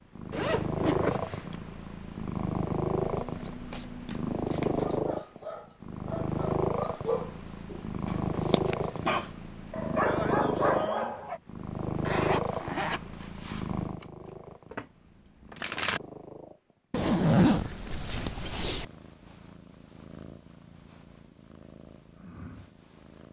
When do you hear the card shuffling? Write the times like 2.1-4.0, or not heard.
3.0-5.0, 14.0-16.0.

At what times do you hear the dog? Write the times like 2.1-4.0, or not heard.
4.8-11.4.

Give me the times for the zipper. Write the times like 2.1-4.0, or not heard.
0.3-1.6, 12.1-13.7, 16.9-18.9.